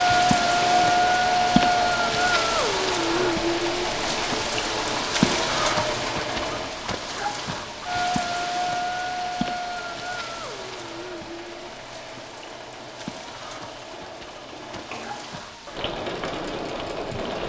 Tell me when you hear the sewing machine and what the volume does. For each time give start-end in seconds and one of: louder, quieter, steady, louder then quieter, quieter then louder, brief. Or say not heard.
0.0-17.4 quieter.